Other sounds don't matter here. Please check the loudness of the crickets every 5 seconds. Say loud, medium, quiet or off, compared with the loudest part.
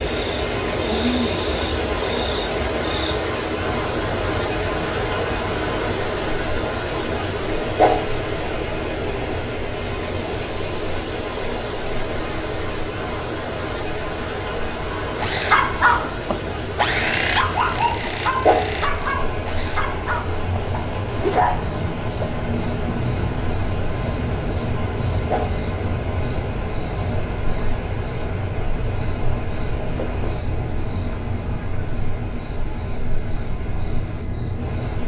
loud, medium, medium, medium, loud, loud, loud.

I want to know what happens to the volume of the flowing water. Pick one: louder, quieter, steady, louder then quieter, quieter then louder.
quieter.